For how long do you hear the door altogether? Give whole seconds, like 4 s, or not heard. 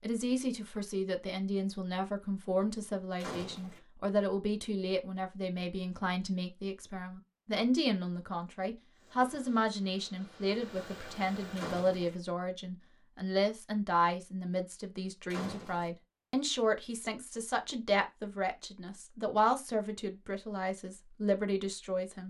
2 s.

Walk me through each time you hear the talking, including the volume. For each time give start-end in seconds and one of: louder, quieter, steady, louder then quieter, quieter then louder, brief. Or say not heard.
0.0-22.2 steady.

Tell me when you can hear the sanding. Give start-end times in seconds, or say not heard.
not heard.